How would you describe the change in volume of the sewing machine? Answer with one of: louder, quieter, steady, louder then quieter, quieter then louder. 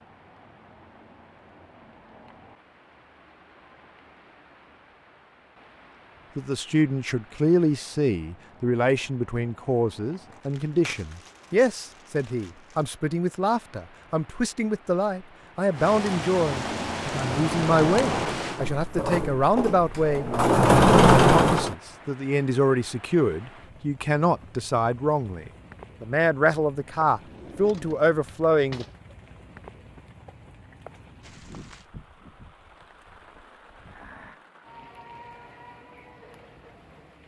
louder.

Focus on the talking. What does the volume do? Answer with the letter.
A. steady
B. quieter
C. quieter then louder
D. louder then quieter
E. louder
A.